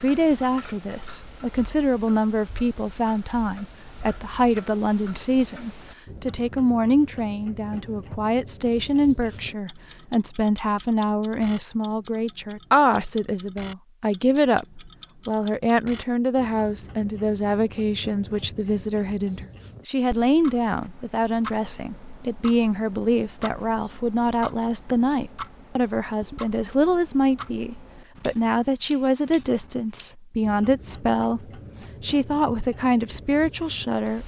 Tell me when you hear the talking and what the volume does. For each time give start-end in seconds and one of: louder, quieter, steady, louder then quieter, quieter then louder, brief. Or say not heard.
0.0-34.2 steady.